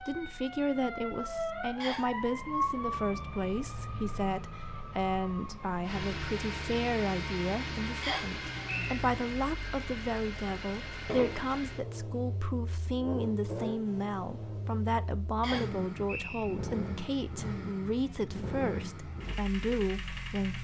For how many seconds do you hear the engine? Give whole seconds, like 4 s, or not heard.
15 s.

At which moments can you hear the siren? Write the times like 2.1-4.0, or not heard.
0.0-6.0.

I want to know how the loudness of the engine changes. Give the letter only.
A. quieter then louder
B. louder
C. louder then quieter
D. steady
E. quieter
D.